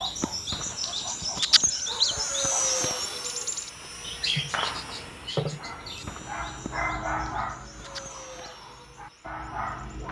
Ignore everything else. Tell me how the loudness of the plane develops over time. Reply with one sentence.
The loudness of the plane goes up, then down.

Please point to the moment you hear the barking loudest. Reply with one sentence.
The volume of the barking peaks at 7 seconds.